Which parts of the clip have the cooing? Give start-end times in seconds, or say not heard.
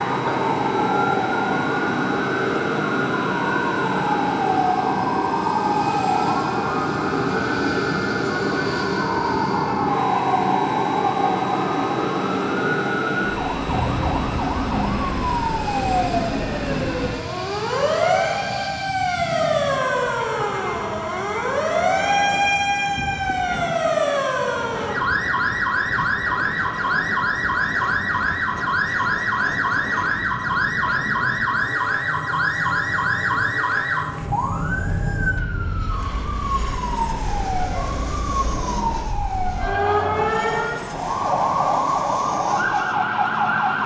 not heard.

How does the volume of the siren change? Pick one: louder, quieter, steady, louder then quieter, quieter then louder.
steady.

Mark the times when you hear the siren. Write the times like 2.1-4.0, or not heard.
0.0-43.8.